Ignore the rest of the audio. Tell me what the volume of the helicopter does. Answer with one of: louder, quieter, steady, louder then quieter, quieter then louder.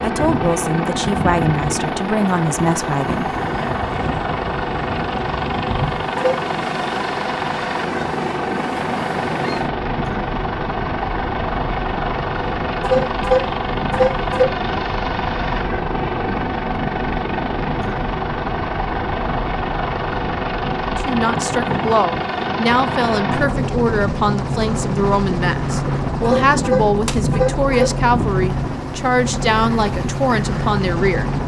steady.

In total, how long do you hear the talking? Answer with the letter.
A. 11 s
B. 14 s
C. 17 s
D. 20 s
B.